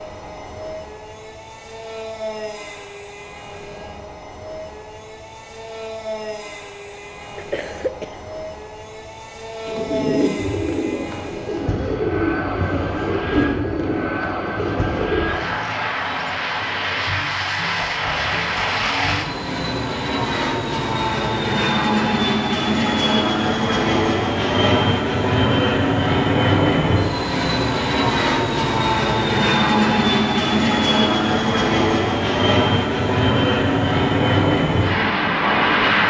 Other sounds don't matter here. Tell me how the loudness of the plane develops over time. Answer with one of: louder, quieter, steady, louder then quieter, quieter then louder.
louder.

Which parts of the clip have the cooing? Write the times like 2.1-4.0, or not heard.
9.7-15.2.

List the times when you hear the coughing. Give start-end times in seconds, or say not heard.
6.9-8.2.